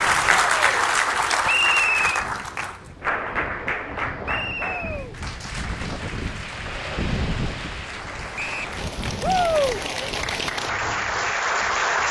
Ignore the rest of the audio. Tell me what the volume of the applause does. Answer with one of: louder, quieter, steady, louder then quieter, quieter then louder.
quieter then louder.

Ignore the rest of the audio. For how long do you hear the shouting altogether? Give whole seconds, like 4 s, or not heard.
2 s.